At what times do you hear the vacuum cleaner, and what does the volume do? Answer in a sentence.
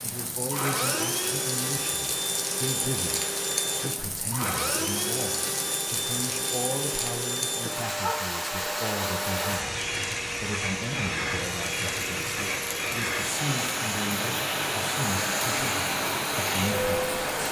You can hear the vacuum cleaner from 0.0 to 17.4 s, at a steady volume.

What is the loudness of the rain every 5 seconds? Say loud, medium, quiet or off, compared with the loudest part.
medium, medium, medium, loud.